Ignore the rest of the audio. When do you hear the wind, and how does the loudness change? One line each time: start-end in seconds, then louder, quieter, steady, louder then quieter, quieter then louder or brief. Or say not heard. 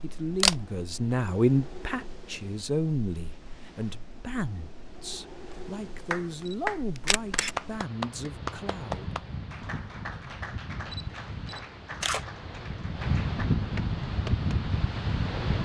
0.0-15.6 louder.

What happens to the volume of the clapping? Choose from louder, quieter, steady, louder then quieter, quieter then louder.
quieter.